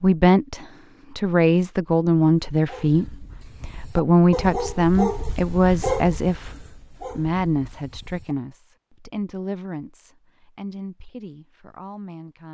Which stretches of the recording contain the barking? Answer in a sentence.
The barking can be heard from 2.5 to 8.3 s.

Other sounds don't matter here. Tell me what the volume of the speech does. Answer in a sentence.
The loudness of the speech goes down.